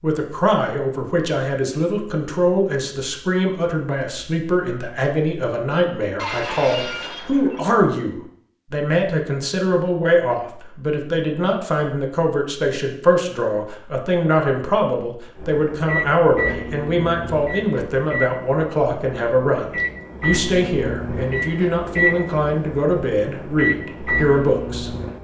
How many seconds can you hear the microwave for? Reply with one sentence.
You can hear the microwave for 10 seconds altogether.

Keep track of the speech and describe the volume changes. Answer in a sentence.
The loudness of the speech stays about the same.